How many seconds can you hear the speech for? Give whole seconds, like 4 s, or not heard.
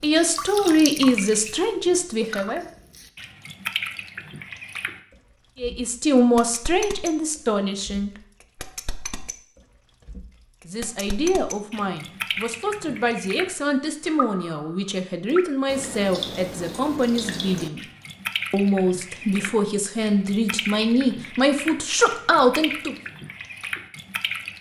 17 s.